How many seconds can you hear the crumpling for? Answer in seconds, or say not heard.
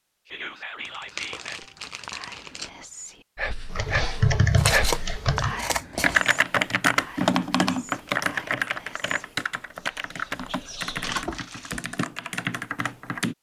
3 s.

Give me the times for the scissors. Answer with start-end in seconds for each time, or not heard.
4.5-6.2.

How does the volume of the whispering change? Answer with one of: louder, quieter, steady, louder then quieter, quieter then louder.
louder then quieter.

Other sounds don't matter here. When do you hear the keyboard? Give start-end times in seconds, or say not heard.
3.7-13.3.